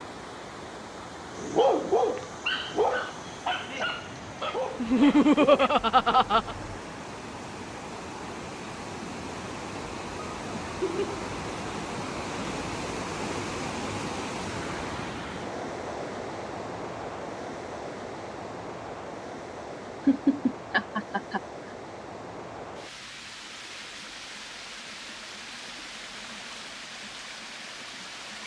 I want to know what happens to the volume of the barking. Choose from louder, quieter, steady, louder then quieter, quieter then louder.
quieter.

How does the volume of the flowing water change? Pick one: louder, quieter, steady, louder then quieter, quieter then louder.
louder then quieter.